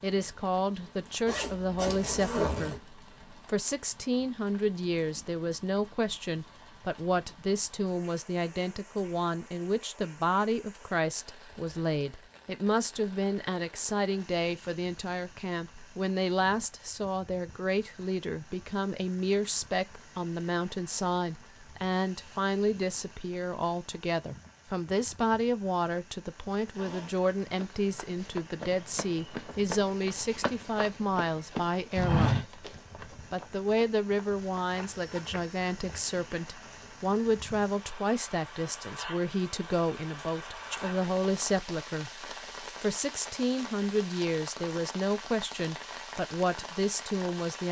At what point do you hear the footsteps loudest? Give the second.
32 s.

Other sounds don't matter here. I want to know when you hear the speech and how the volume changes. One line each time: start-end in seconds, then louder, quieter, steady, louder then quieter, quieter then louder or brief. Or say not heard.
0.0-32.5 steady
33.3-47.6 steady.